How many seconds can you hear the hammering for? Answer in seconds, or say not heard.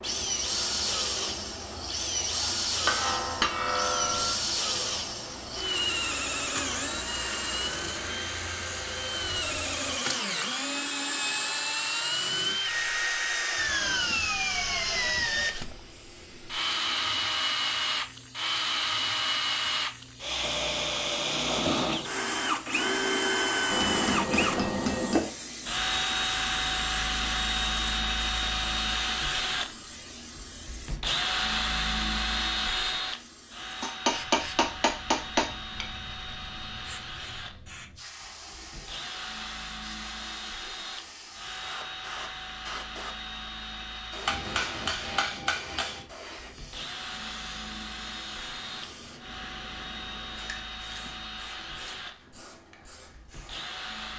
7 s.